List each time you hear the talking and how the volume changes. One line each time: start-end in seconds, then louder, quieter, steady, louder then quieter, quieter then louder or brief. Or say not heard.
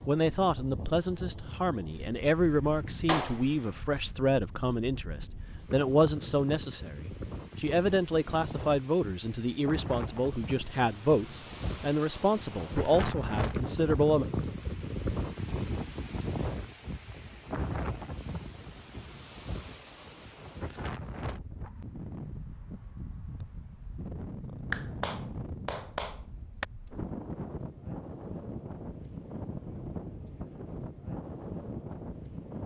0.1-14.2 steady.